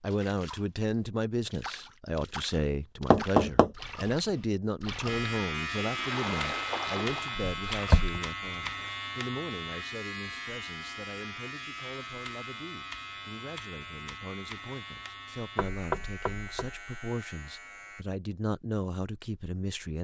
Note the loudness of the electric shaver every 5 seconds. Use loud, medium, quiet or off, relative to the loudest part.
off, loud, medium, medium.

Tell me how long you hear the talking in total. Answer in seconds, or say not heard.
20 s.